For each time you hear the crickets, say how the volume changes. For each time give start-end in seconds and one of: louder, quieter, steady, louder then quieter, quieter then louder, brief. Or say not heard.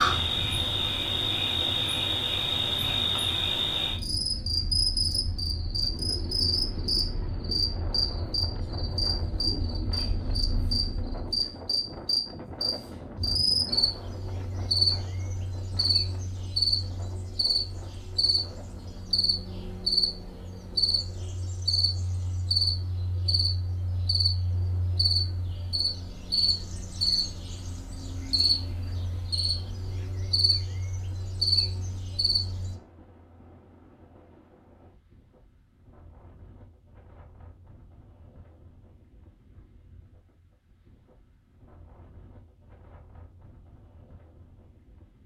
0.0-32.8 steady.